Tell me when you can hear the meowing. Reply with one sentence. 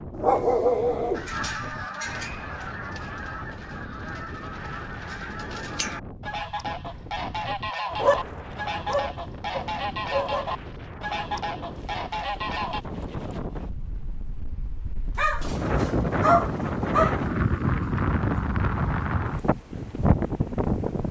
You can't hear the meowing here.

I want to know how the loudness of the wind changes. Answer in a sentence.
The loudness of the wind goes up.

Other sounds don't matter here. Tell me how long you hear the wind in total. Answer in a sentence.
The wind can be heard for 21 seconds in total.